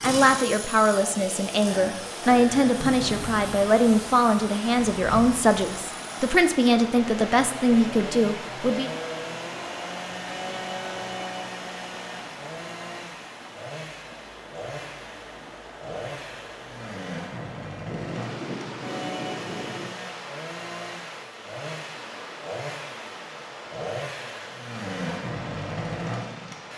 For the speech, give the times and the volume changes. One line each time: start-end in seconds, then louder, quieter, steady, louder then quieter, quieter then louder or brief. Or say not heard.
0.0-8.9 steady.